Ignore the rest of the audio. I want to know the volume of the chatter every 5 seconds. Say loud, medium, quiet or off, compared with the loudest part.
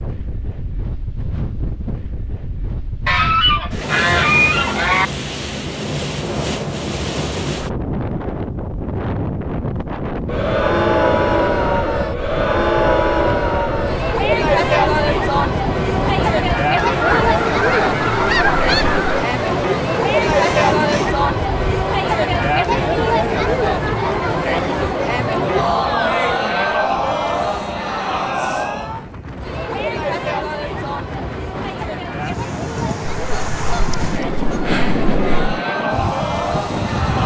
off, off, loud, loud, loud, loud, medium, medium.